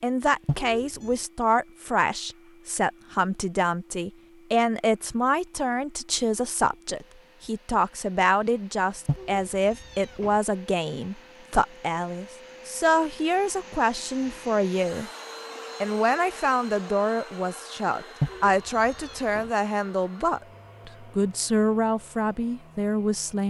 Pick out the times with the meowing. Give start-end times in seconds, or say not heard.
0.5-1.1, 9.1-10.4, 18.2-19.5.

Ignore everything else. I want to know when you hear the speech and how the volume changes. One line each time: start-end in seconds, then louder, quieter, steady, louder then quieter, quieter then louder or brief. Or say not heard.
0.0-15.1 steady
15.8-23.4 steady.